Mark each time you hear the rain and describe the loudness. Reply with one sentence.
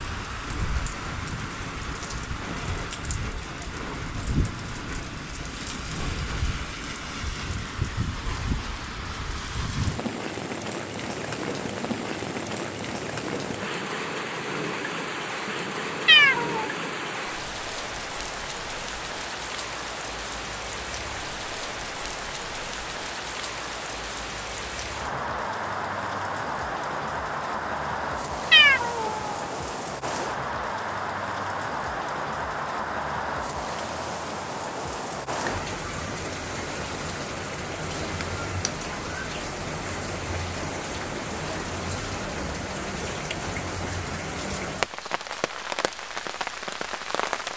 You can hear the rain from 0.0 to 47.5 s, at a steady volume.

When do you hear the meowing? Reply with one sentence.
The meowing can be heard from 16.1 to 16.7 s and from 28.5 to 29.4 s.